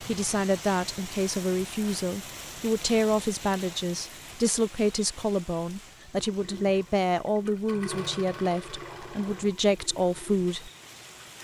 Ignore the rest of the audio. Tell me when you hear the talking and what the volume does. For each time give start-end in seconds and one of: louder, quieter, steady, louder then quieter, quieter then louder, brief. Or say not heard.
0.0-10.7 steady.